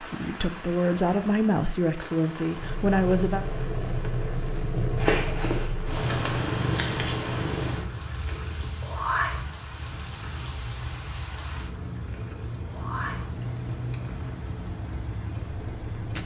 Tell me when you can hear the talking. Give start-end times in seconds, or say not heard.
0.0-3.5.